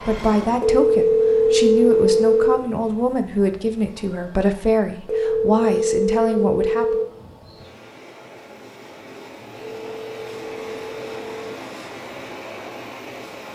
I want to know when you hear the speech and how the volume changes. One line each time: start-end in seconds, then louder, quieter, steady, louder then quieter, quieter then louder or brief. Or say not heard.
0.0-7.0 steady.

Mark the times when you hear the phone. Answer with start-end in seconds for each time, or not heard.
0.6-2.5, 5.0-7.0, 9.6-11.6.